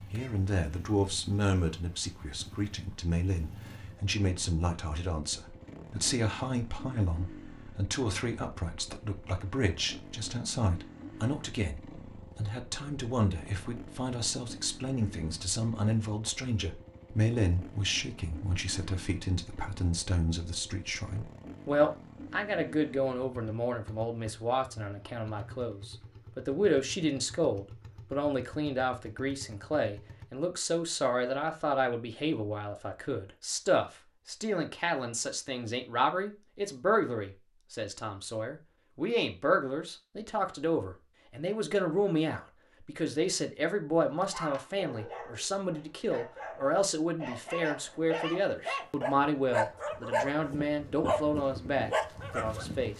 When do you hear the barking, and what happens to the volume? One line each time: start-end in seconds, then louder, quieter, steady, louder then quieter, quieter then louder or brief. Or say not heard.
44.2-52.9 louder.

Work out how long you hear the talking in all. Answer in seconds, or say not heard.
53 s.